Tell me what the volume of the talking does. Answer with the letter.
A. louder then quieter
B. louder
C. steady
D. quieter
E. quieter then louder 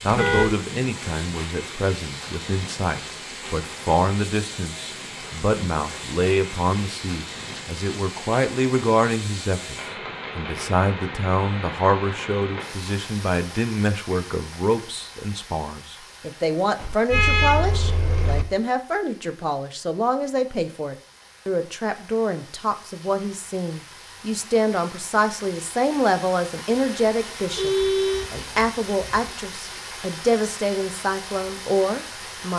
C.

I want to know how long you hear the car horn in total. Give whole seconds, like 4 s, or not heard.
4 s.